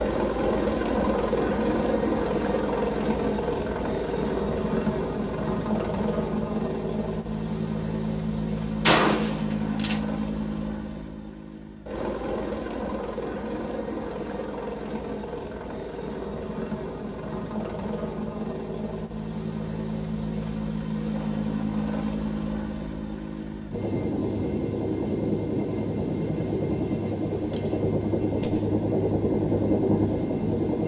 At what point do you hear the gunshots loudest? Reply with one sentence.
The volume of the gunshots peaks at 9 seconds.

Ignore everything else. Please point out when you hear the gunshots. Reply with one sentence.
The gunshots can be heard from 8.8 to 10.0 s and from 27.3 to 28.8 s.